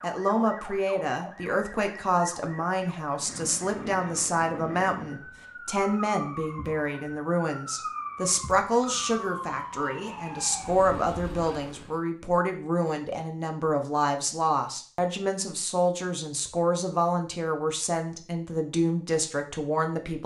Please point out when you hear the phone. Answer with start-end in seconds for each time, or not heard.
not heard.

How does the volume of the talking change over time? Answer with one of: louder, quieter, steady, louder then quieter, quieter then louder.
steady.